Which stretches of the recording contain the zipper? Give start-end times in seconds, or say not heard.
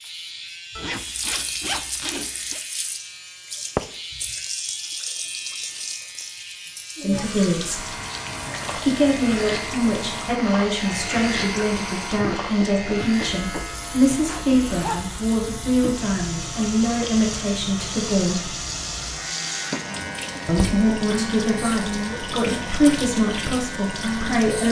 0.8-2.6, 14.2-15.2.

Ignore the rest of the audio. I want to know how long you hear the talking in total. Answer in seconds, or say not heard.
15 s.